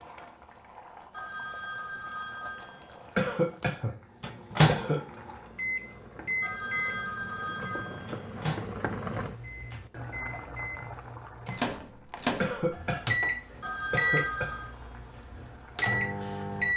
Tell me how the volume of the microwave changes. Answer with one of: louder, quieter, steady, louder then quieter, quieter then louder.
quieter then louder.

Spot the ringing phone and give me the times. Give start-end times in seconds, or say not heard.
1.1-3.3, 6.4-8.4, 13.6-14.7.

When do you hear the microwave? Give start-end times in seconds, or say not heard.
4.2-16.7.